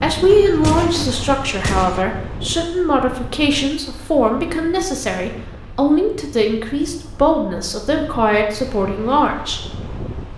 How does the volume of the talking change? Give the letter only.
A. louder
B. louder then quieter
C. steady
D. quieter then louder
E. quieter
C.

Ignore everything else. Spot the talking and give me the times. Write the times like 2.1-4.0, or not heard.
0.0-9.6.